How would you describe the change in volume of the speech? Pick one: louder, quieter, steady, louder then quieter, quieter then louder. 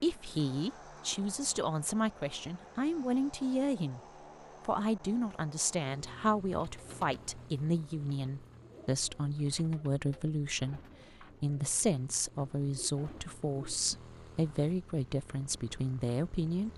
steady.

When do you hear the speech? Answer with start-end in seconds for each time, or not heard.
0.0-4.0, 4.7-16.7.